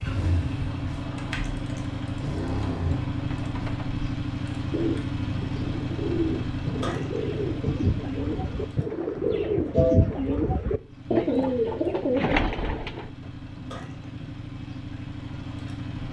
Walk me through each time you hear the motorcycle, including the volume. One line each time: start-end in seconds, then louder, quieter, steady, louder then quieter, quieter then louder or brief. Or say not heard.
0.0-16.0 quieter.